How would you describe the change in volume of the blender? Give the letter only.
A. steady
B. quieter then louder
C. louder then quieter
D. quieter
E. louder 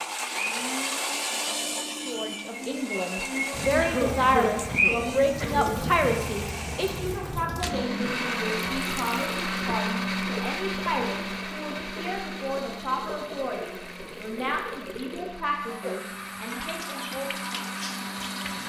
D.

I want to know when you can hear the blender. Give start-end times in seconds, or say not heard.
0.0-18.6.